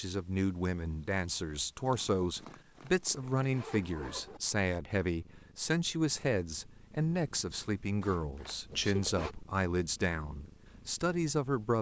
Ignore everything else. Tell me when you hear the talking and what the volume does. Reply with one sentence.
The talking can be heard from 0.0 to 11.7 s, at a steady volume.